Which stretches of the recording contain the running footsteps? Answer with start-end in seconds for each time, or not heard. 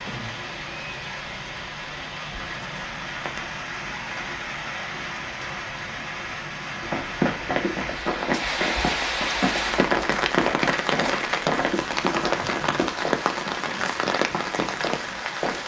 6.8-15.6.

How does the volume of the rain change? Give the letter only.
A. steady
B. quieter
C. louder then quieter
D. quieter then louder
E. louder
E.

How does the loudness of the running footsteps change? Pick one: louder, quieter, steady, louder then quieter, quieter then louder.
quieter.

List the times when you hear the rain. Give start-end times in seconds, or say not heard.
0.0-15.6.